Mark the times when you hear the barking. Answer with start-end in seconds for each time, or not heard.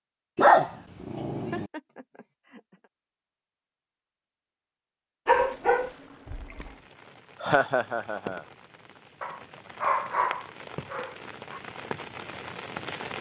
0.3-1.6, 5.2-6.7, 9.2-11.6.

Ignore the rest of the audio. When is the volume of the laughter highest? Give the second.
8 s.